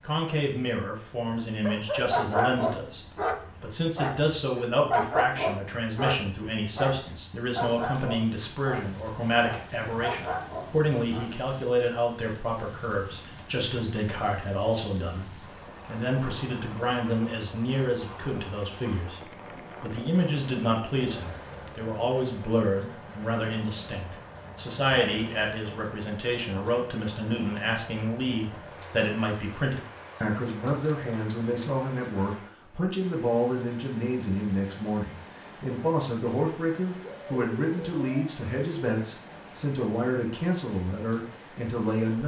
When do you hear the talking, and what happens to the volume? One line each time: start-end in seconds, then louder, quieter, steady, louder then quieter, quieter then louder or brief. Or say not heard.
0.0-42.2 steady.